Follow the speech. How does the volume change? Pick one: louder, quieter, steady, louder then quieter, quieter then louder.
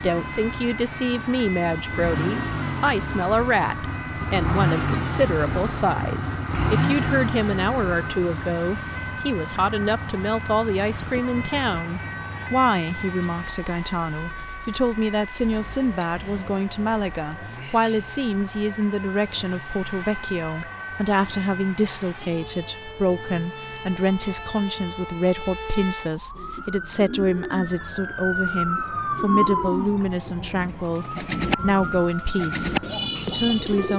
steady.